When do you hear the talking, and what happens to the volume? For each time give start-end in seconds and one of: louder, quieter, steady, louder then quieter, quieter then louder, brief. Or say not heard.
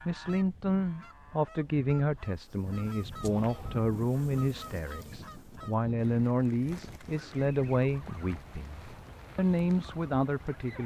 0.0-10.8 steady.